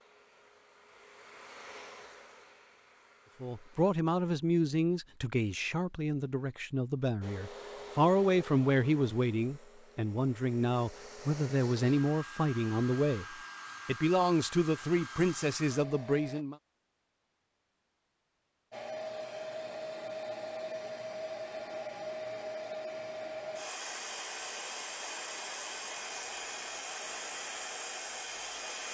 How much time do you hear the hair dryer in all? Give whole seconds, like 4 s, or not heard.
23 s.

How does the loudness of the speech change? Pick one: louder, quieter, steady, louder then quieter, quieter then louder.
steady.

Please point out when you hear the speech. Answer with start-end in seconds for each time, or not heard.
3.4-16.6.